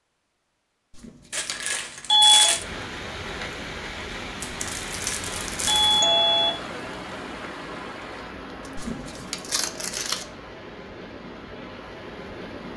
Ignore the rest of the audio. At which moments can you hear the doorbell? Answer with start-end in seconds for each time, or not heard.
0.9-2.5, 5.0-6.5, 8.8-9.3.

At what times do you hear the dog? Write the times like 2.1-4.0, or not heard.
not heard.